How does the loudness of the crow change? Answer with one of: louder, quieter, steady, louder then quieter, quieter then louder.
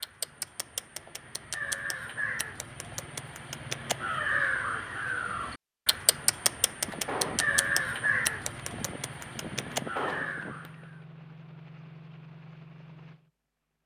louder then quieter.